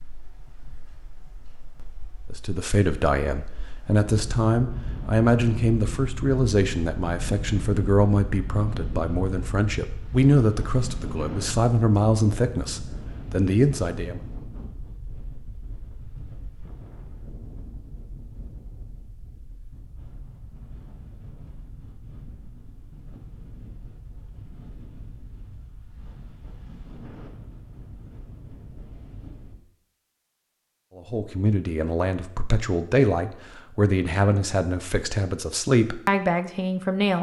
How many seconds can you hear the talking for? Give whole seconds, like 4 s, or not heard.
18 s.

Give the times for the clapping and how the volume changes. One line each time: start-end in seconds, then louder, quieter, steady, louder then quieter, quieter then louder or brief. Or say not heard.
not heard.